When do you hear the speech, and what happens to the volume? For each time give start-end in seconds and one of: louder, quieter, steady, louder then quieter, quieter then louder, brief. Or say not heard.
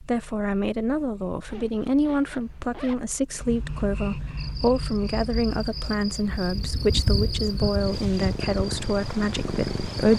0.0-10.1 steady.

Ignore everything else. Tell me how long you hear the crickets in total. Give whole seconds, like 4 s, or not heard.
6 s.